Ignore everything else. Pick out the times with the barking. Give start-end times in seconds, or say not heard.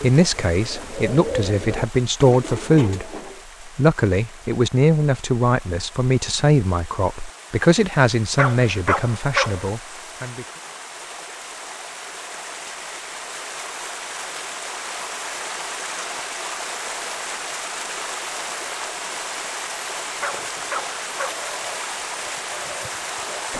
8.3-9.7, 20.2-21.4.